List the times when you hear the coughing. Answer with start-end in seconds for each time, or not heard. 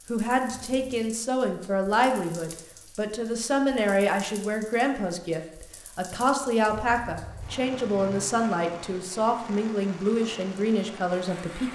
not heard.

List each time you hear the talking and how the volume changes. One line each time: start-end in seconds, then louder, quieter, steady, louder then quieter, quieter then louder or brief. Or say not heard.
0.1-11.7 steady.